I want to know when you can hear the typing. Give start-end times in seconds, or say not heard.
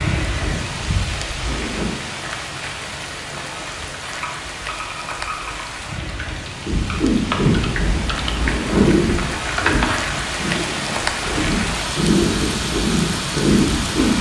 4.1-10.1.